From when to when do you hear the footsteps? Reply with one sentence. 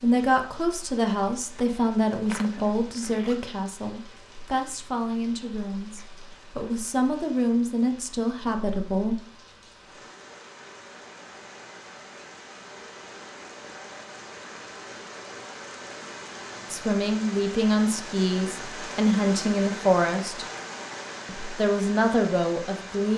You can't hear the footsteps here.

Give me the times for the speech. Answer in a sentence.
The speech can be heard from 0.0 to 9.2 s, from 16.7 to 20.4 s and from 21.2 to 23.1 s.